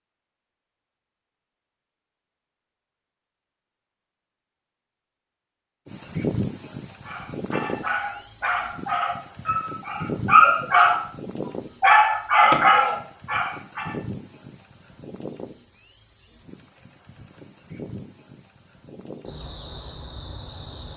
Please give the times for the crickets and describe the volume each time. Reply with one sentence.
You can hear the crickets from 5.8 to 20.9 s, getting quieter.